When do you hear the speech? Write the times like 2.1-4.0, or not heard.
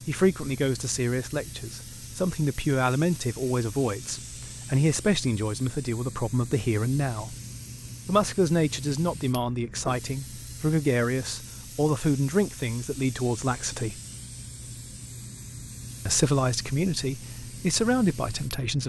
0.1-7.3, 8.1-14.0, 16.1-18.8.